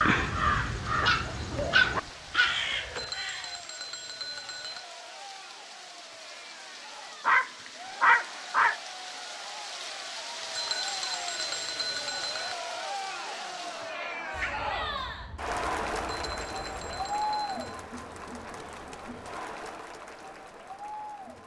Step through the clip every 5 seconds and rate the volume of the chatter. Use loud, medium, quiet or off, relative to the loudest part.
quiet, medium, loud, loud, medium.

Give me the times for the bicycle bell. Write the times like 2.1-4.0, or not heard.
3.0-4.8, 10.6-12.6, 16.1-17.8.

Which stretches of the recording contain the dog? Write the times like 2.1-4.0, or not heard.
1.0-2.6, 7.2-8.8, 14.3-17.1.